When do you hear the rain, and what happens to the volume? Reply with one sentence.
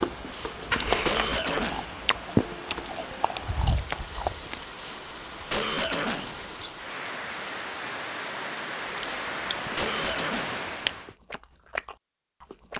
You can hear the rain from 0.0 to 11.2 s, getting louder.